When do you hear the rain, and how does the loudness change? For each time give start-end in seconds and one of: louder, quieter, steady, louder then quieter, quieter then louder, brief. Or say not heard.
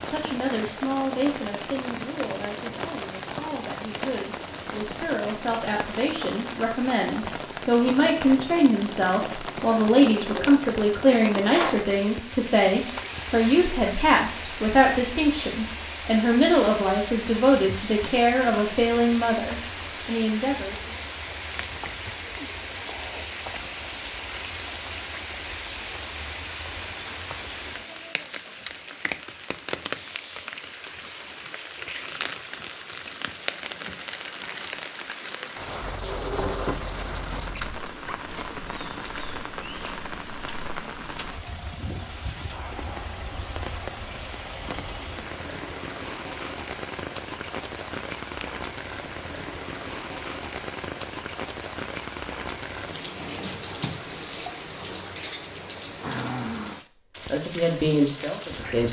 0.0-58.8 steady.